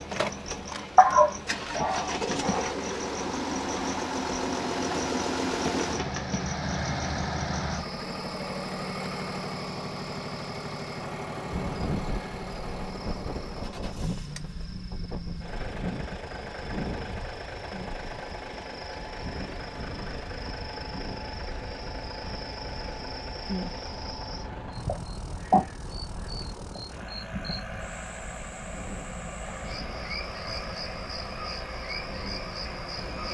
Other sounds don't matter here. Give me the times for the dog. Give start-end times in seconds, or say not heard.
0.9-2.7.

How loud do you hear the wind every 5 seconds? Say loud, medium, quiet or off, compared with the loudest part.
off, off, loud, loud, medium, medium, medium.